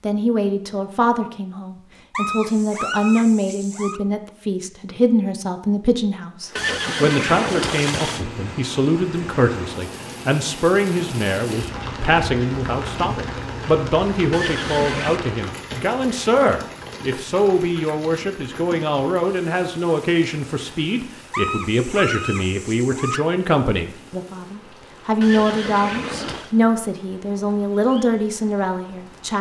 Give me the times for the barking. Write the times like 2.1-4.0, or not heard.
2.1-4.0, 21.3-23.2.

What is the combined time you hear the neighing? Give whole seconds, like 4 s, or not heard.
4 s.